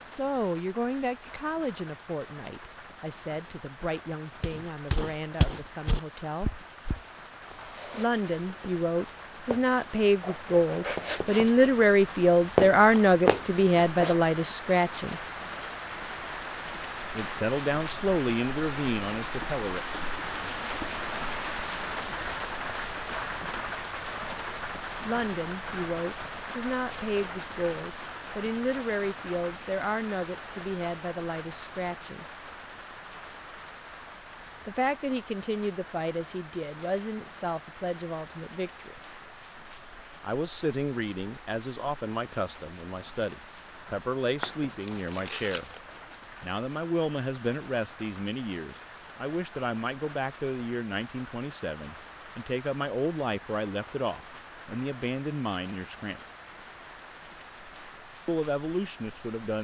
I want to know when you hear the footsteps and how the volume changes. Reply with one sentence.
The footsteps can be heard from 4.4 to 14.2 s, getting quieter then louder.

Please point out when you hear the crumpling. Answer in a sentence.
You can hear the crumpling from 44.4 to 45.8 s.